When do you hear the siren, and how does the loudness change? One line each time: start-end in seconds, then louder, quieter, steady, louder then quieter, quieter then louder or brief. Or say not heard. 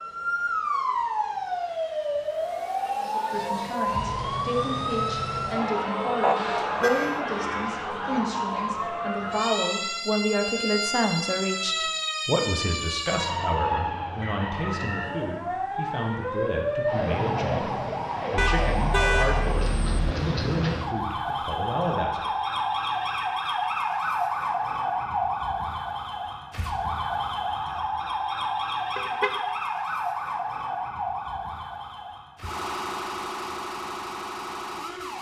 0.0-35.1 steady.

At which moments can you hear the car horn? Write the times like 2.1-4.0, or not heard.
6.2-7.2, 18.4-20.0, 28.9-29.4.